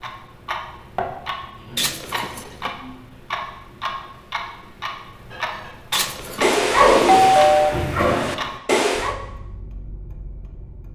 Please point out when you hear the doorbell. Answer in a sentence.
The doorbell can be heard from 1.8 to 2.7 s and from 5.9 to 7.7 s.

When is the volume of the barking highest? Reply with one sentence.
The loudest moment of the barking is at 7 seconds.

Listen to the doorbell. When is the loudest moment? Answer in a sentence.
The volume of the doorbell peaks at 7 seconds.